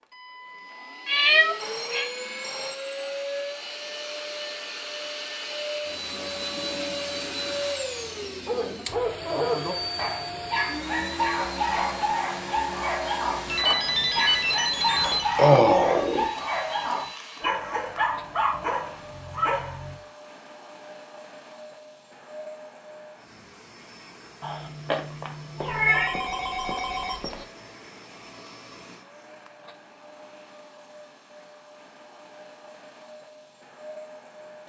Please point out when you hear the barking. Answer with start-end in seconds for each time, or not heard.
8.4-20.0.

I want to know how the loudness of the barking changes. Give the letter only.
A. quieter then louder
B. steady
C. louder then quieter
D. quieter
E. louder
B.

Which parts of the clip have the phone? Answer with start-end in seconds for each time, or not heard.
1.4-2.8, 13.4-15.2, 25.6-27.4.